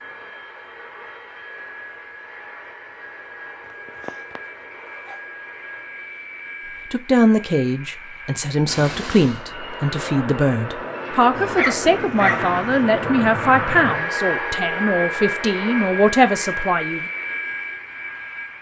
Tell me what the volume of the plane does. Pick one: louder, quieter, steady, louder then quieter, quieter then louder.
louder.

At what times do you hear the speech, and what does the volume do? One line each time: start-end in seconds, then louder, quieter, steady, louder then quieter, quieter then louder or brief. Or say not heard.
6.9-17.1 steady.